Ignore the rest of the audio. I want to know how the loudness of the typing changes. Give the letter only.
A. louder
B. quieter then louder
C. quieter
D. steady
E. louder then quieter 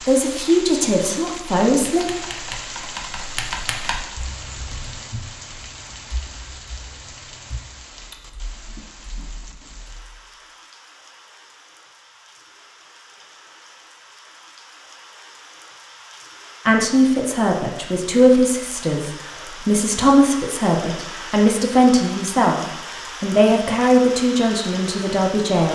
C.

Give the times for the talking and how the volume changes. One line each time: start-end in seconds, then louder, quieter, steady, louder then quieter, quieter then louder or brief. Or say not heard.
0.0-2.0 brief
16.6-25.7 steady.